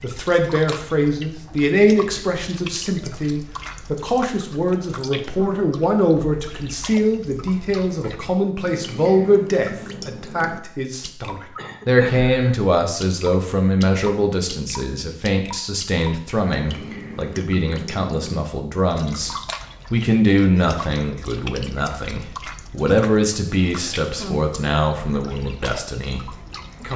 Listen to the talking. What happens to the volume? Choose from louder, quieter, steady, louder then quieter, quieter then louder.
steady.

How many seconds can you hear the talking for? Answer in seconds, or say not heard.
26 s.